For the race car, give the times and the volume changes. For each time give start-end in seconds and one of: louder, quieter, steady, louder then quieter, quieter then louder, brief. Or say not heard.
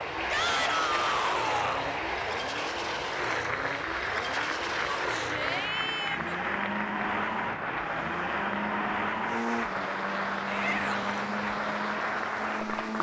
0.0-12.9 steady.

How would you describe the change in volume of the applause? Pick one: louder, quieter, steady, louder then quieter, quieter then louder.
steady.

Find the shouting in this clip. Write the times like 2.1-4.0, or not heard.
0.3-1.9, 5.0-6.4, 10.4-11.2.